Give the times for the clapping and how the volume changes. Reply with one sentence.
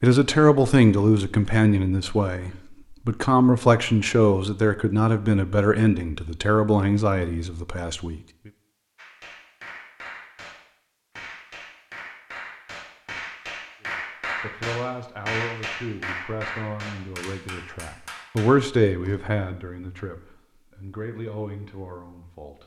The clapping can be heard from 8.9 to 19.1 s, getting louder then quieter.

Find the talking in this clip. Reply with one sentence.
You can hear the talking from 0.0 to 8.2 s and from 13.8 to 22.6 s.